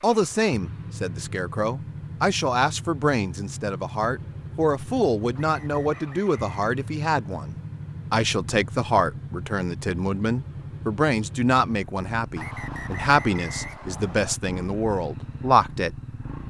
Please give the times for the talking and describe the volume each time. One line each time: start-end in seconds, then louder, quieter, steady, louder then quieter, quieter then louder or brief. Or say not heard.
0.0-15.9 steady.